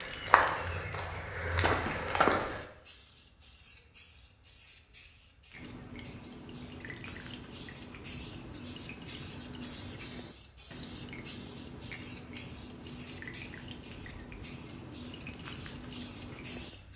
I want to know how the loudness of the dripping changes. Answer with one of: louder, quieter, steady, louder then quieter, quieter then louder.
steady.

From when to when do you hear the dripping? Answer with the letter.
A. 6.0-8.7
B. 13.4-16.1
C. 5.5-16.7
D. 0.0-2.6
C.